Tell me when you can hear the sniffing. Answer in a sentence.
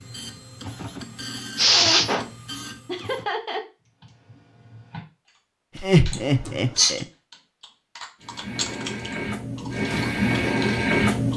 You can hear the sniffing from 1.6 to 2.2 s and from 6.1 to 7.0 s.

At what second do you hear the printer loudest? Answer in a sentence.
The volume of the printer peaks at 11 seconds.